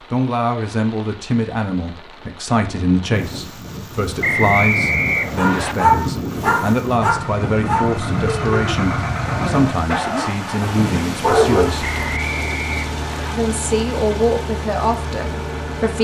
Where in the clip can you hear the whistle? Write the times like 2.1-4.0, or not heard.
4.2-5.8, 11.8-13.3.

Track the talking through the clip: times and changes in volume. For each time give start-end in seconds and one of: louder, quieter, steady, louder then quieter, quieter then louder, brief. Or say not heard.
0.1-11.9 steady
13.3-15.9 brief.